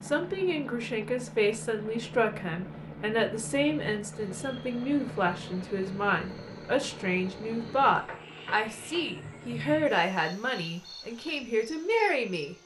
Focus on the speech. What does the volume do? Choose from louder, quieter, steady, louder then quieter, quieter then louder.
steady.